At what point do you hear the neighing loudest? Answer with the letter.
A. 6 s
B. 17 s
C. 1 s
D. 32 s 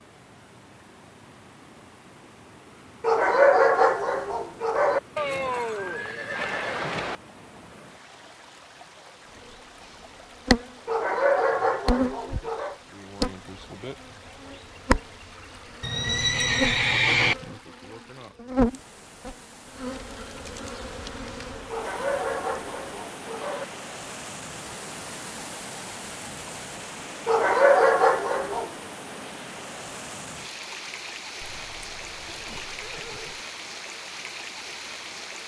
B.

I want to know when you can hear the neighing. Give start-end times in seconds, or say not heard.
5.2-7.2, 15.8-17.4, 31.4-33.4.